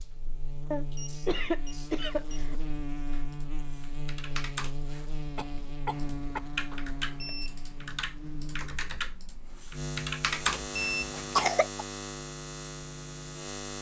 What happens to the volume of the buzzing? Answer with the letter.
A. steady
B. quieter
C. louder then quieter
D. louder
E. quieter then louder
A.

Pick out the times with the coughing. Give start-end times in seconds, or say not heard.
0.7-2.6, 5.3-6.5, 11.2-11.8.